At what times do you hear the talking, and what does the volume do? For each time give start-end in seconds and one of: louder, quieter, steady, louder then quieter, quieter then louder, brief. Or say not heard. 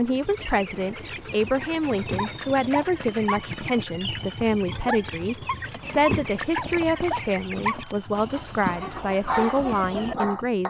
0.0-10.6 steady.